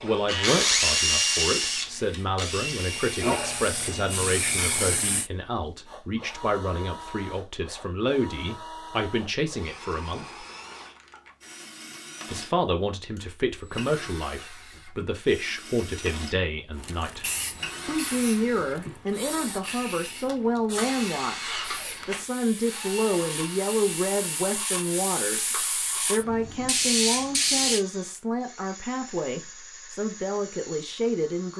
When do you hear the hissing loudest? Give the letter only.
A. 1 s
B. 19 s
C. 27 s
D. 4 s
C.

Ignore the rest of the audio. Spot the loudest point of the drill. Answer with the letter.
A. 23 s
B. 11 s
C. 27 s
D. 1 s
D.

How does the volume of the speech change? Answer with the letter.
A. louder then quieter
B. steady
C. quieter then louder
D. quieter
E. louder
B.